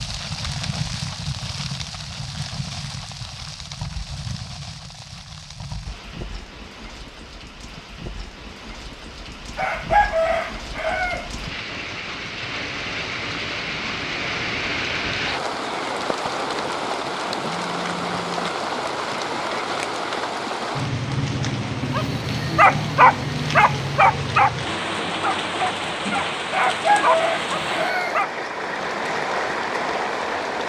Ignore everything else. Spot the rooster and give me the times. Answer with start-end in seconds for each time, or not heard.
9.6-11.3, 26.5-28.2.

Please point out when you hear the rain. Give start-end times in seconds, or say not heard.
0.0-30.6.